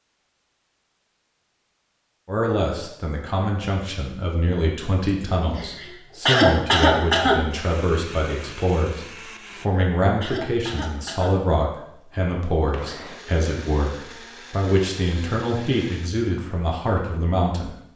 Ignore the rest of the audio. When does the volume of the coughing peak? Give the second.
6 s.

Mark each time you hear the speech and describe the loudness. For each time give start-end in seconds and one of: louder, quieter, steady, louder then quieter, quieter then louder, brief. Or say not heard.
2.2-17.8 steady.